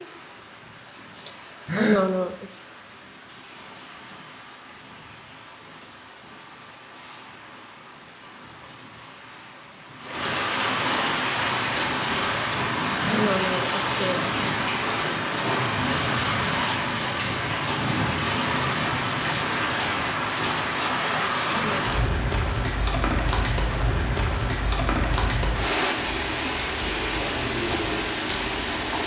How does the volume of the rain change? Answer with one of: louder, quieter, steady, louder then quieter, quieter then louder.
louder.